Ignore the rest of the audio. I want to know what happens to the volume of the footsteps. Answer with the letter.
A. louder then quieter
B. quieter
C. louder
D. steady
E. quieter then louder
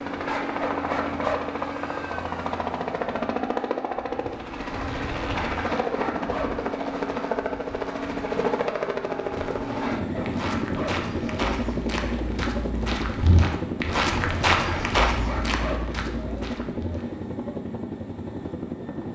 A.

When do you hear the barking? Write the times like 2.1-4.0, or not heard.
0.2-1.5, 5.3-6.5, 9.8-11.0, 14.7-15.8.